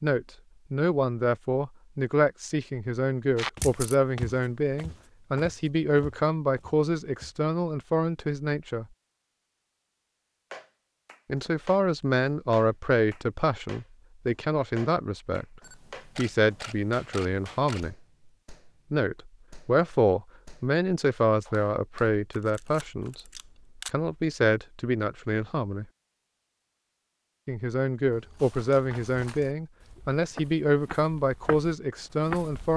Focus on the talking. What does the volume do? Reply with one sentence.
The loudness of the talking stays about the same.